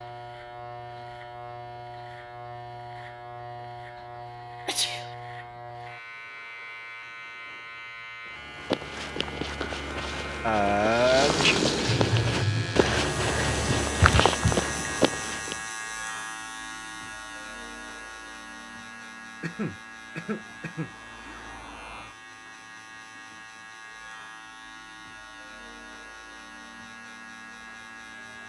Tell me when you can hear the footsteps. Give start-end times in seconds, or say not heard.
8.3-15.6.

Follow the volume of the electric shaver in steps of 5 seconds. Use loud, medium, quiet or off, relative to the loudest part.
medium, medium, loud, loud, medium, medium.